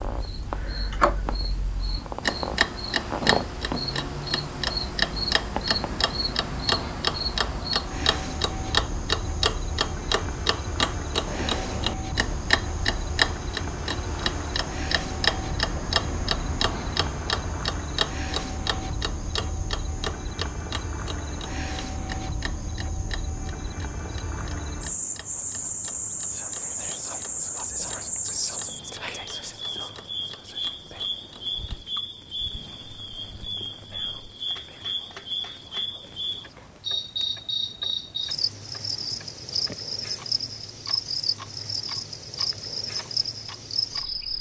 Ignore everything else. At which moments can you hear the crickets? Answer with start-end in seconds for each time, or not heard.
0.0-44.3.